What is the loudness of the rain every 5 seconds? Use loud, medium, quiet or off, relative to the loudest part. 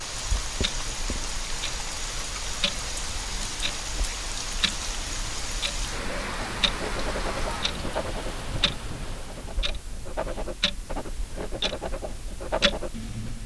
loud, loud, off.